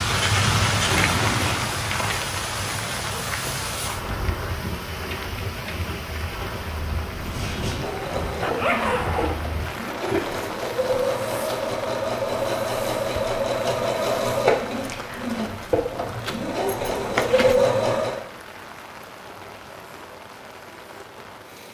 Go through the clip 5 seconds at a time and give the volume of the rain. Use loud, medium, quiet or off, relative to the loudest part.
loud, medium, medium, quiet, quiet.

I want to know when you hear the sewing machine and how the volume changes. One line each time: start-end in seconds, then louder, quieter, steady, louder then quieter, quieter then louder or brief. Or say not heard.
7.0-18.2 louder.